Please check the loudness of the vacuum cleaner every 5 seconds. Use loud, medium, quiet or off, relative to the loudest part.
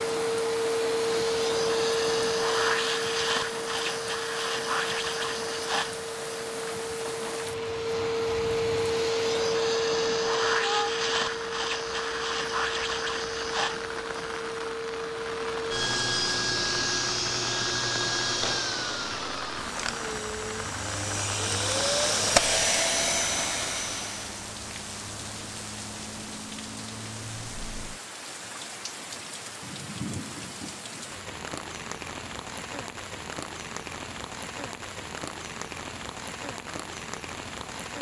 loud, loud, loud, loud, loud, off, off, off.